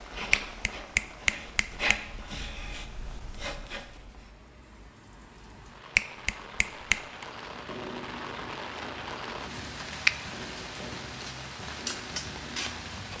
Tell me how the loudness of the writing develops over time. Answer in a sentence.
The volume of the writing goes down.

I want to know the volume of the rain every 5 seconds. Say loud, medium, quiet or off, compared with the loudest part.
quiet, loud, loud.